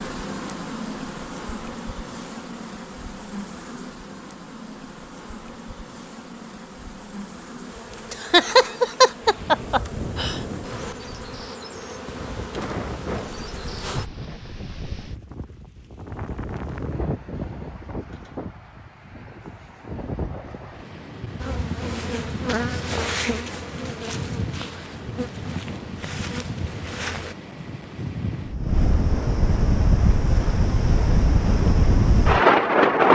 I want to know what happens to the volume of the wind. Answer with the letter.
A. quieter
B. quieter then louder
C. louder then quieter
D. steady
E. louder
E.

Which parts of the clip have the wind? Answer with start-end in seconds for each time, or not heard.
9.2-33.0.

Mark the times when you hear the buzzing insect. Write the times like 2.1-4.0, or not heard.
0.0-14.1, 21.4-27.4.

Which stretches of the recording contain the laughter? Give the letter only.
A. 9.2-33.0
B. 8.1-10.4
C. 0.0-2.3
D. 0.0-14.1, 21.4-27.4
B.